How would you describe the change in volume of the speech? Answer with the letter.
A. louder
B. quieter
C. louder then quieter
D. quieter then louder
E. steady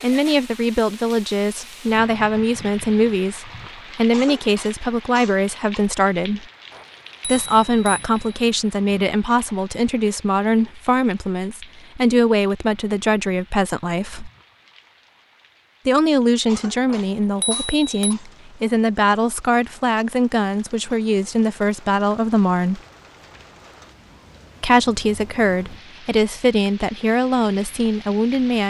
E.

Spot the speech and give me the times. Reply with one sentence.
The speech can be heard from 0.0 to 6.5 s, from 7.2 to 14.3 s, from 15.8 to 22.8 s and from 24.6 to 28.6 s.